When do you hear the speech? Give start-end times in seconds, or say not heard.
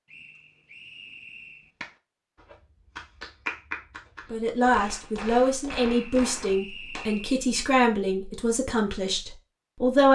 4.3-10.0.